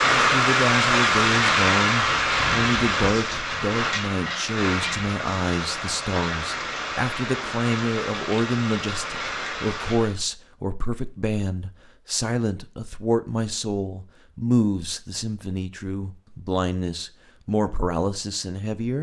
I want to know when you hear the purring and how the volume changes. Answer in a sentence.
The purring can't be heard in this clip.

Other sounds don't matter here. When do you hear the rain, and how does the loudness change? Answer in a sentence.
The rain can be heard from 0.0 to 10.2 s, getting quieter.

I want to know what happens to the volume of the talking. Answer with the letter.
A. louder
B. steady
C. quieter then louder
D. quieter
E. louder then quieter
B.